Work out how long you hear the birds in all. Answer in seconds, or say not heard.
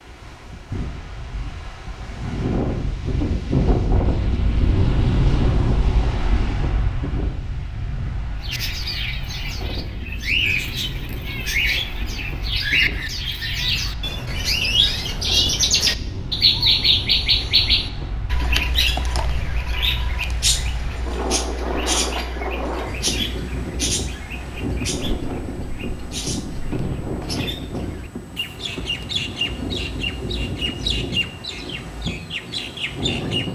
25 s.